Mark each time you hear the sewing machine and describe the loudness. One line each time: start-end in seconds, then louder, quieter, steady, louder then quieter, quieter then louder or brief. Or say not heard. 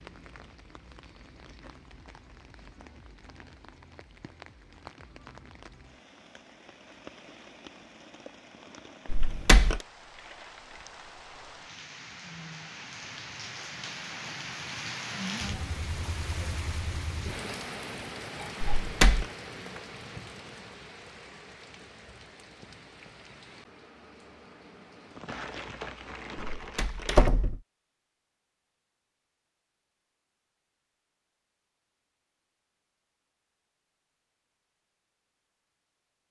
not heard.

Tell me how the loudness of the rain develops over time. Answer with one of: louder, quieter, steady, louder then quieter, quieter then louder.
louder then quieter.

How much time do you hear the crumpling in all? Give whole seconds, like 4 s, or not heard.
3 s.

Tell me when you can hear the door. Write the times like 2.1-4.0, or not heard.
9.1-9.8, 18.6-19.2, 26.6-27.6.